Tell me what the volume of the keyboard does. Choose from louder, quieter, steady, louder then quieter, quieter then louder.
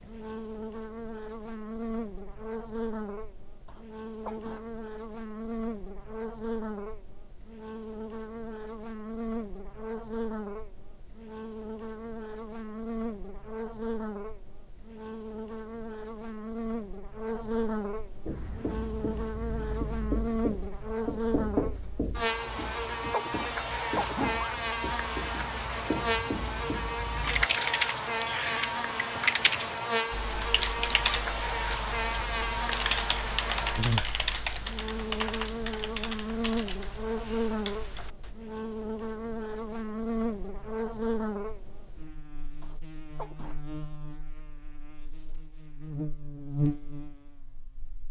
quieter.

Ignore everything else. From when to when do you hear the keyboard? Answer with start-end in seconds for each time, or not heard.
27.1-38.4.